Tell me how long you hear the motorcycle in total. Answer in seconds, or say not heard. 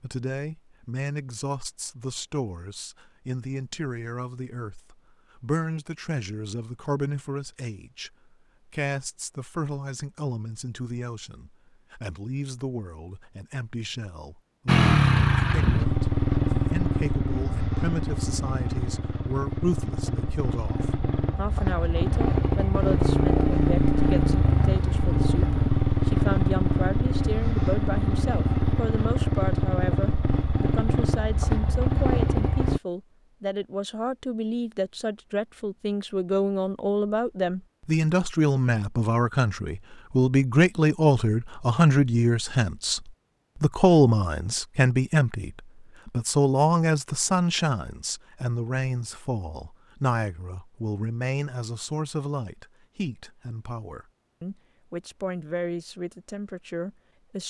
18 s.